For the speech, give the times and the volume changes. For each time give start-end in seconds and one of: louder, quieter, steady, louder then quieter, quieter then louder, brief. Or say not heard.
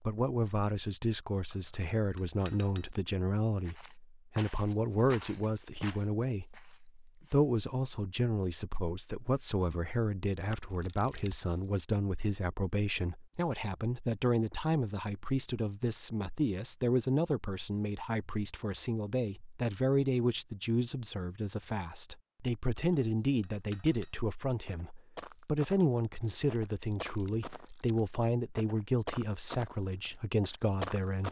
0.1-31.2 steady.